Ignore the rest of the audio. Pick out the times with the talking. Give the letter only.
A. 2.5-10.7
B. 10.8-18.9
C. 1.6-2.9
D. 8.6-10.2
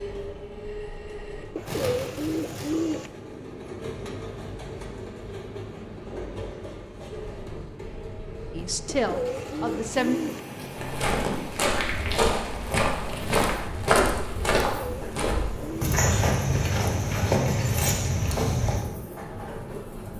D.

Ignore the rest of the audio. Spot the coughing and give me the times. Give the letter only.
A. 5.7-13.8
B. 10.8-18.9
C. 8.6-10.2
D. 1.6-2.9
D.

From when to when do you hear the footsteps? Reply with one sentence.
You can hear the footsteps from 10.8 to 18.9 s.